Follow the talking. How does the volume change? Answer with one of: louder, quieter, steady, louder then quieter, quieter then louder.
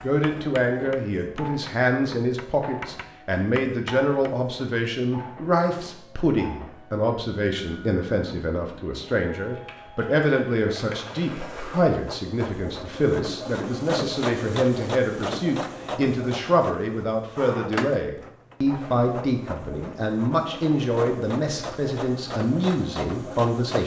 steady.